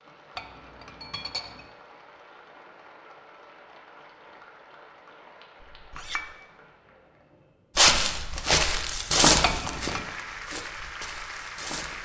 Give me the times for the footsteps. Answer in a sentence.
You can hear the footsteps from 7.8 to 12.0 s.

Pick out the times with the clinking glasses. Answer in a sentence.
You can hear the clinking glasses from 0.3 to 1.7 s, from 5.6 to 6.3 s and from 9.4 to 10.1 s.